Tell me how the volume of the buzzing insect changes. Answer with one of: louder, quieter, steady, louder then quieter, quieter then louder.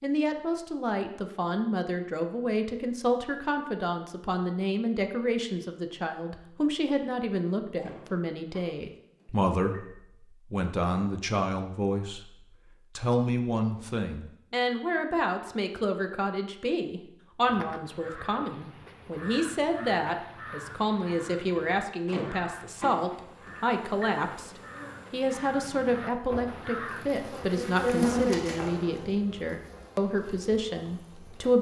louder then quieter.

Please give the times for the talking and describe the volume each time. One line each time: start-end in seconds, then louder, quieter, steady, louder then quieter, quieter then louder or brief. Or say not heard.
0.0-24.5 steady
25.1-31.5 steady.